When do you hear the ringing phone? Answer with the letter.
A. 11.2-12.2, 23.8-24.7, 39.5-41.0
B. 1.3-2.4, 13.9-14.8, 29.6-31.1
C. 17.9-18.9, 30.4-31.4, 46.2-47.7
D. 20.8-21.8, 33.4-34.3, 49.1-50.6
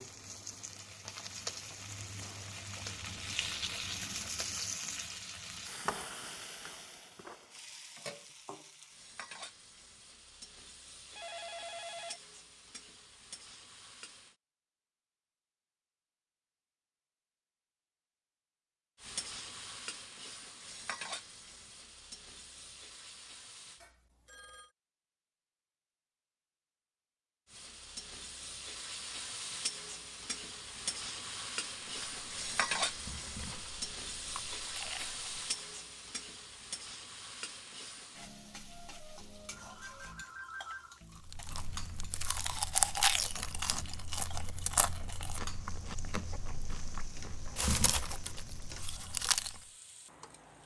A.